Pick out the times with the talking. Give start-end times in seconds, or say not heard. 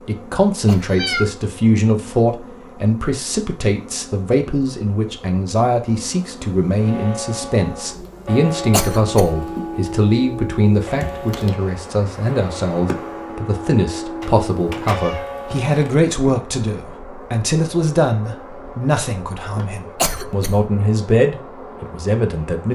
0.1-22.7.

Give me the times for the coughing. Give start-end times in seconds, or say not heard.
0.7-1.4, 8.7-9.4, 19.9-20.7.